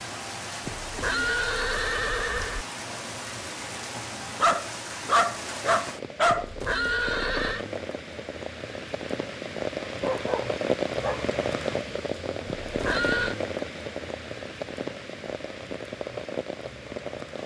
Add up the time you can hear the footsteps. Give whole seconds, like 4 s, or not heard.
not heard.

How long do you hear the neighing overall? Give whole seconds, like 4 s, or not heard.
4 s.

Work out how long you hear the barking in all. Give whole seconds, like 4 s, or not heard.
3 s.